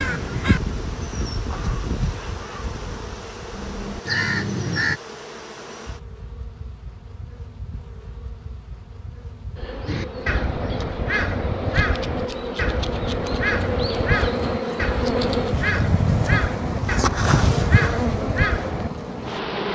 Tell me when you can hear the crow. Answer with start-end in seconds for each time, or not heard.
0.0-5.0, 9.8-18.9.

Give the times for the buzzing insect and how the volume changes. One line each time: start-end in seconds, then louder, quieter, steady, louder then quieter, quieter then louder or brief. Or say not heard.
0.0-19.7 louder.